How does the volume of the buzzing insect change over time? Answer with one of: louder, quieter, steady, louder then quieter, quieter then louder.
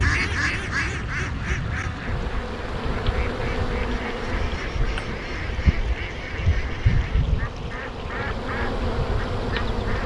louder.